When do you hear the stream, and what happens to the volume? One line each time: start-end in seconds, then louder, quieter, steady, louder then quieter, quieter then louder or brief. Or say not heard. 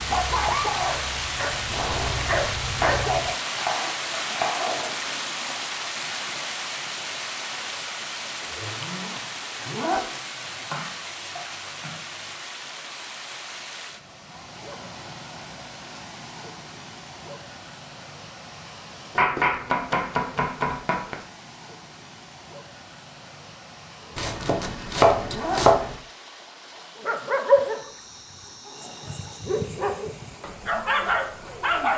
0.0-31.9 quieter.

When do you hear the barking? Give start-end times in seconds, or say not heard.
0.0-3.4, 26.8-31.9.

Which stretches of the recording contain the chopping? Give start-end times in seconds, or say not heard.
2.8-5.0, 10.4-12.3, 19.1-21.1, 24.1-25.9.